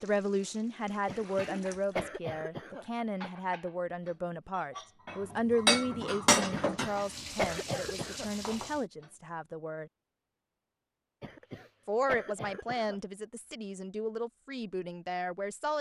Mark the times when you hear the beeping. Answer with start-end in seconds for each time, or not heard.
not heard.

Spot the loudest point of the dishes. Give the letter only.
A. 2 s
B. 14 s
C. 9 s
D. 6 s
D.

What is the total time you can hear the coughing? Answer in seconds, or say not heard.
6 s.